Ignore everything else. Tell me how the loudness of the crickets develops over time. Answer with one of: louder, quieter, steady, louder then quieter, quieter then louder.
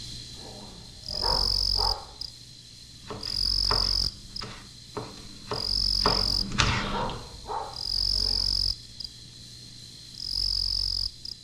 steady.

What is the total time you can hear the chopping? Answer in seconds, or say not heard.
4 s.